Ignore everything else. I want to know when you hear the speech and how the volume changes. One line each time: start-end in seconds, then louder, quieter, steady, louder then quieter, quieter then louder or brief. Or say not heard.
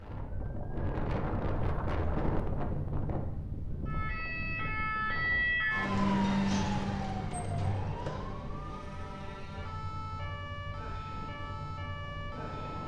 not heard.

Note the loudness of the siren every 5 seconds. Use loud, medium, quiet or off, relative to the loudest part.
medium, loud, medium.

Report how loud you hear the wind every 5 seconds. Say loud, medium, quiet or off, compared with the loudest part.
loud, medium, medium.